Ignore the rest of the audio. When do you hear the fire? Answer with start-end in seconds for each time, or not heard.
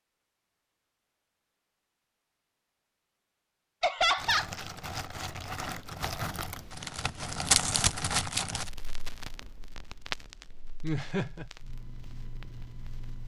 4.2-13.2.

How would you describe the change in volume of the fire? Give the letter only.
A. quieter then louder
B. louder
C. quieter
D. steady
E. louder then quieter
E.